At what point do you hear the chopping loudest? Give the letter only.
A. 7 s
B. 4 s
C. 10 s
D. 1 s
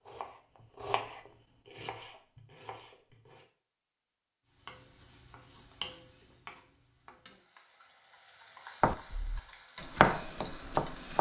C.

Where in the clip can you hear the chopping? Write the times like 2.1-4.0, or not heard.
0.0-3.5, 8.8-11.1.